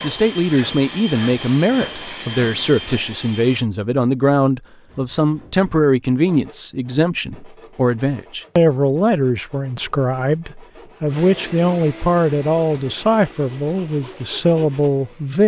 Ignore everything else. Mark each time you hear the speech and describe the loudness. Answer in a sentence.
You can hear the speech from 0.0 to 15.4 s, at a steady volume.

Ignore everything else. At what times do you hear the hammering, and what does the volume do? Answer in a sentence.
You can't hear the hammering here.